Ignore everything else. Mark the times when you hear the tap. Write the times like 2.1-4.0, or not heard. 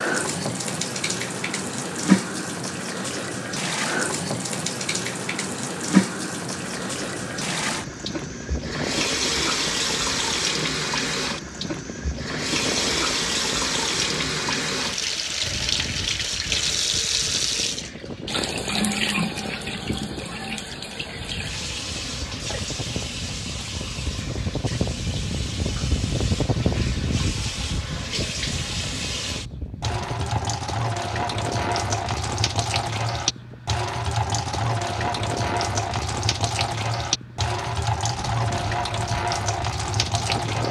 0.0-40.6.